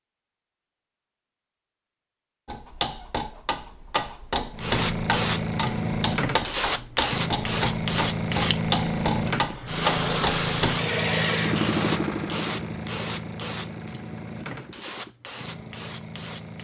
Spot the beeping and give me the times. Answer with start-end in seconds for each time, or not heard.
not heard.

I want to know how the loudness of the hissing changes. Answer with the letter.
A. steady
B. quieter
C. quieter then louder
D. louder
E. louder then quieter
B.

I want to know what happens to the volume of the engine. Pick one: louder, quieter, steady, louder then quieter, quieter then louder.
quieter.